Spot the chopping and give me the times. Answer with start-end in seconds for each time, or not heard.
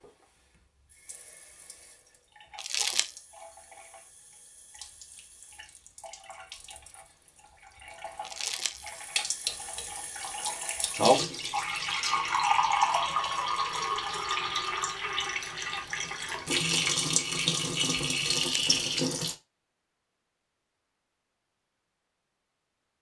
not heard.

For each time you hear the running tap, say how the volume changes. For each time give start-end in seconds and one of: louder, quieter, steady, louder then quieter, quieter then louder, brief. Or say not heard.
0.0-19.4 louder.